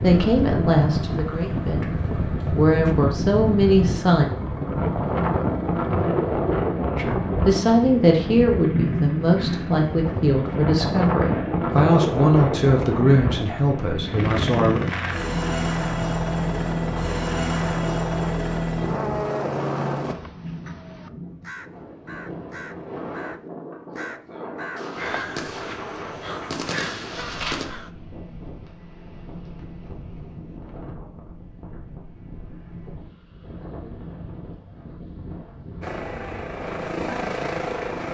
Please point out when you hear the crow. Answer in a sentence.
The crow can be heard from 20.0 to 27.9 s.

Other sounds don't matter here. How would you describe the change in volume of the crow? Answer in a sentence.
The volume of the crow goes up.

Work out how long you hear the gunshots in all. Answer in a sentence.
You can hear the gunshots for 3 seconds altogether.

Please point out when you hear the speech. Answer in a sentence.
The speech can be heard from 0.0 to 4.3 s and from 7.0 to 14.8 s.